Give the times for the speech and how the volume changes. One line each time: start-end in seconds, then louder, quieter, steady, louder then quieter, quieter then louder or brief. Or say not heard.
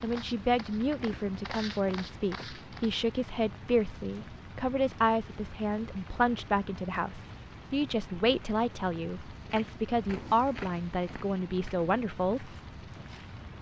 0.0-12.5 steady.